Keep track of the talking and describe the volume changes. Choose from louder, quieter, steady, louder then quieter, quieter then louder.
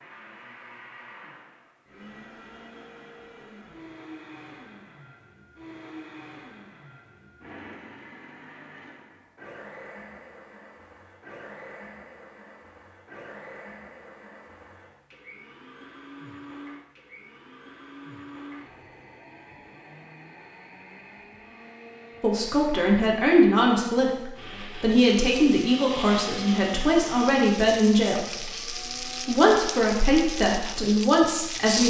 steady.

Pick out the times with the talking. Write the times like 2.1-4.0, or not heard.
22.2-31.8.